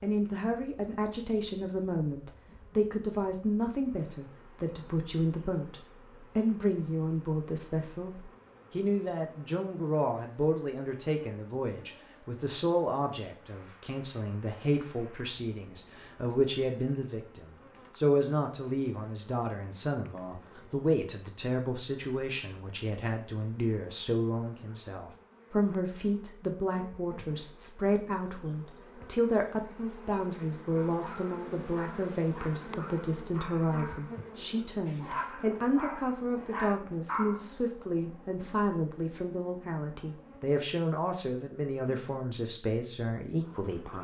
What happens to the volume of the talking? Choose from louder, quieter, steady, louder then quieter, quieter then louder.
steady.